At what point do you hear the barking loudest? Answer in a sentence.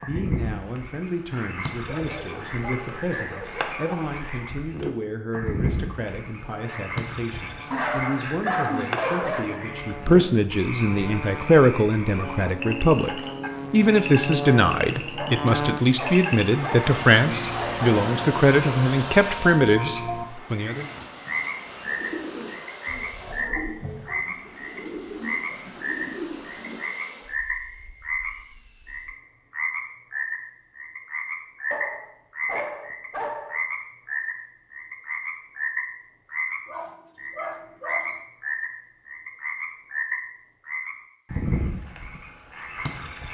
The volume of the barking peaks at 9 seconds.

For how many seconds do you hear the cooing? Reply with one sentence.
You can hear the cooing for 6 seconds altogether.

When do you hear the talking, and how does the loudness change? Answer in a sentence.
You can hear the talking from 0.0 to 20.9 s, getting louder.